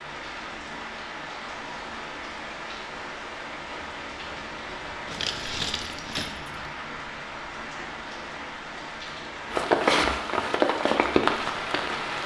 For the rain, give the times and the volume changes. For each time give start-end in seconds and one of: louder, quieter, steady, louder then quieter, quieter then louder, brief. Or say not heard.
0.0-12.2 louder.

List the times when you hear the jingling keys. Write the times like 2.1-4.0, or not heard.
5.0-6.5.